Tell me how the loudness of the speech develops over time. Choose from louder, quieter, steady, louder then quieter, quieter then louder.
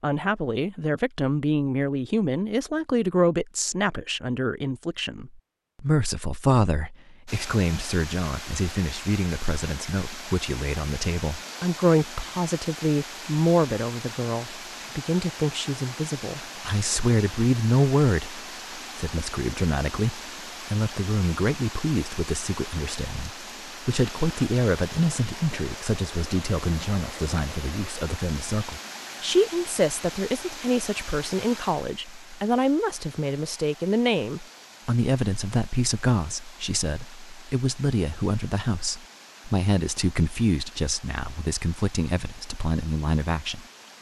steady.